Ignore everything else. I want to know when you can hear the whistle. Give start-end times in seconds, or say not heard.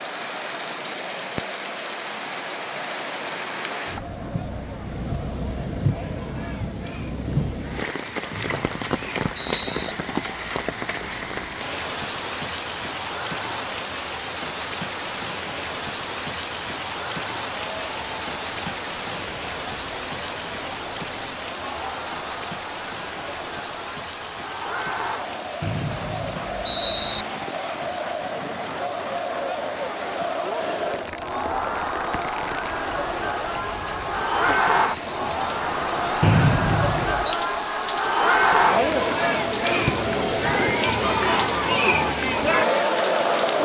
8.3-9.9, 25.6-27.2, 36.2-37.4.